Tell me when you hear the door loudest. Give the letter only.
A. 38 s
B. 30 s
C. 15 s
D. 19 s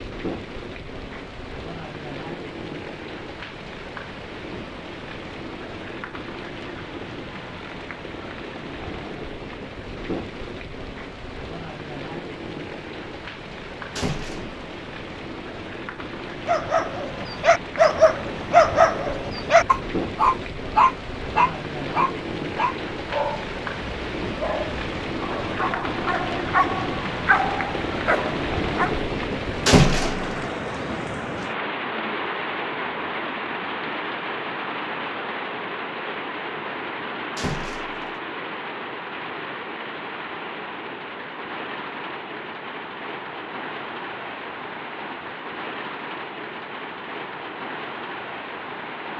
B.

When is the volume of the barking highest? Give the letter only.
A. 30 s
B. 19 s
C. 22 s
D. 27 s
B.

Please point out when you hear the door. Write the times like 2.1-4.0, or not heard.
13.9-14.6, 29.6-30.4, 37.4-38.1.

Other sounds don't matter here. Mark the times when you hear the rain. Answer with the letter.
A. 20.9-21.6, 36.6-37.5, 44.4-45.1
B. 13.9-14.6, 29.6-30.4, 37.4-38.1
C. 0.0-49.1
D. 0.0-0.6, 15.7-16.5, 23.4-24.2
C.